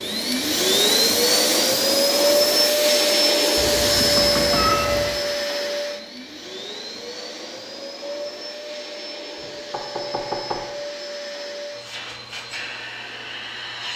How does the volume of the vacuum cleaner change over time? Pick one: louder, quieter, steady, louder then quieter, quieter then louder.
quieter.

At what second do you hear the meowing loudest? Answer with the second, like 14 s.
5 s.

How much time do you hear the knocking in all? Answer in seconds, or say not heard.
2 s.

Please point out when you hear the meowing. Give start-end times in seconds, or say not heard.
3.5-5.2.